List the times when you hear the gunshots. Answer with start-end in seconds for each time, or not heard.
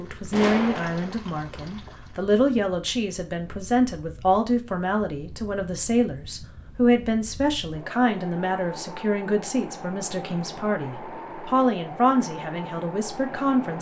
0.3-1.1.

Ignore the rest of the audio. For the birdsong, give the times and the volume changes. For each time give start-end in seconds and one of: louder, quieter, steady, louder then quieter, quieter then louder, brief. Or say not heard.
not heard.